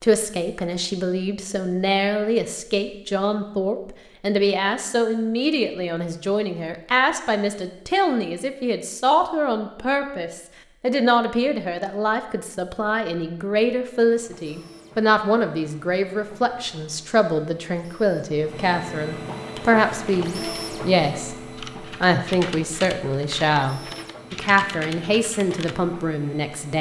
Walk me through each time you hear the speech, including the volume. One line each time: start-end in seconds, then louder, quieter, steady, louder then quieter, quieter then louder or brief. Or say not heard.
0.0-26.7 steady.